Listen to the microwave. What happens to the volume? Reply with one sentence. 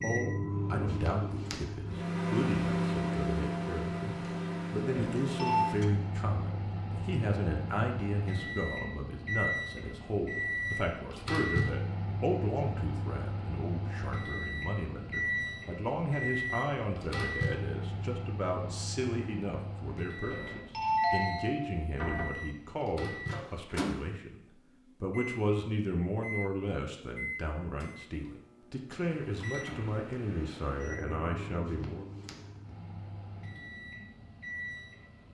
The volume of the microwave goes down.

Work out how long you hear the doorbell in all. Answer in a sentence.
You can hear the doorbell for 3 seconds altogether.